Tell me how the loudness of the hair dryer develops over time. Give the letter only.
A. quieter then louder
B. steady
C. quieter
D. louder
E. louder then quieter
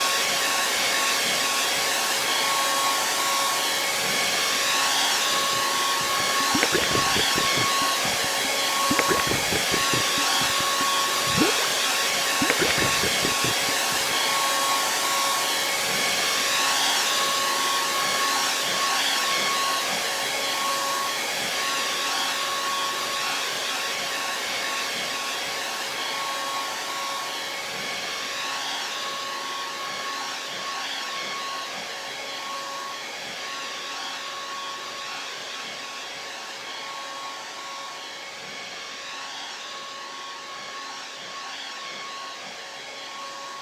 C.